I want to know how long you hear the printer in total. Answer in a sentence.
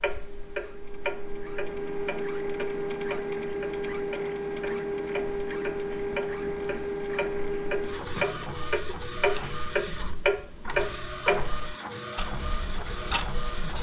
You can hear the printer for 14 seconds altogether.